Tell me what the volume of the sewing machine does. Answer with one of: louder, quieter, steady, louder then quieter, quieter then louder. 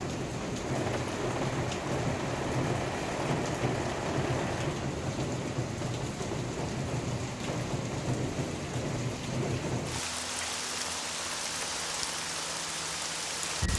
steady.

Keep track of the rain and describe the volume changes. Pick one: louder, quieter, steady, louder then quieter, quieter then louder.
steady.